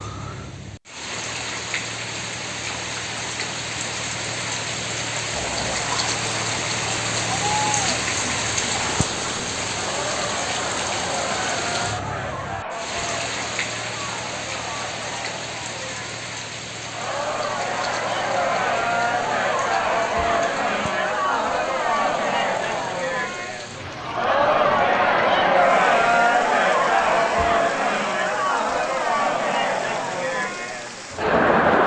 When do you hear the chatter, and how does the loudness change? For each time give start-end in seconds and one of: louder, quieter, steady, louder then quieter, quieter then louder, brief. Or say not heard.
5.3-31.8 louder.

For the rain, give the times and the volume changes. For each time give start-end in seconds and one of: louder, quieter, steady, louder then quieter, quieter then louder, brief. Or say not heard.
0.0-31.8 quieter.